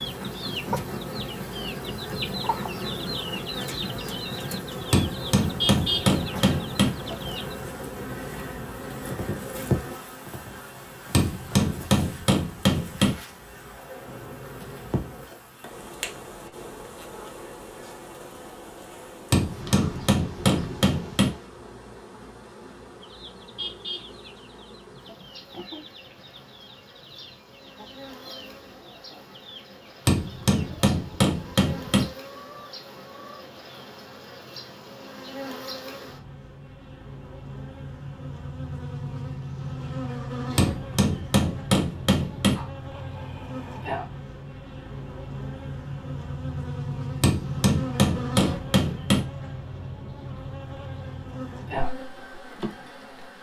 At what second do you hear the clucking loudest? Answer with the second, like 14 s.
6 s.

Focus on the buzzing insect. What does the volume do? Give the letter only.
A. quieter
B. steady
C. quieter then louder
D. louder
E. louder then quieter
C.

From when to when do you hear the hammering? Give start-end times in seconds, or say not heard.
4.9-6.9, 11.1-13.2, 19.3-21.3, 30.1-32.0, 40.5-42.5, 47.2-49.2.